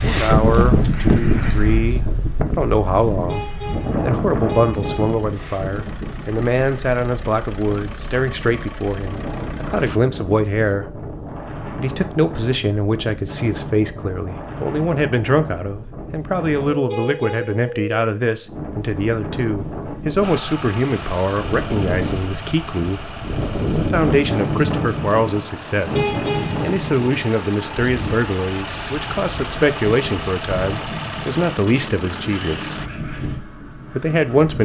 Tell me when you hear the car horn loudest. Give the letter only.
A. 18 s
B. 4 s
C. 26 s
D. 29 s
C.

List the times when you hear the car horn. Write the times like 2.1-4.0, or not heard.
3.2-5.2, 16.9-17.7, 25.9-26.6.